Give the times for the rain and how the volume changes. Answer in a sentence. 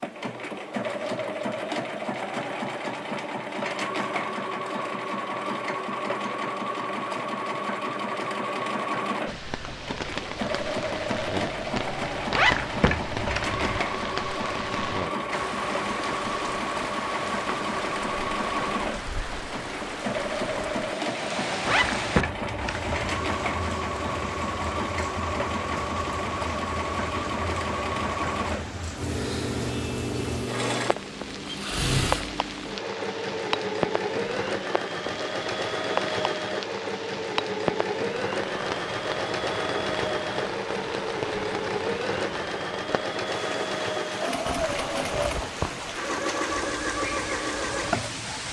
You can hear the rain from 9.2 to 48.4 s, at a steady volume.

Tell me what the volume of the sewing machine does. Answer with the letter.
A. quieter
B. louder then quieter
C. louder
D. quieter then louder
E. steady
E.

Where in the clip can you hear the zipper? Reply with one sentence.
The zipper can be heard from 12.3 to 13.8 s, from 21.6 to 22.9 s and from 44.5 to 46.0 s.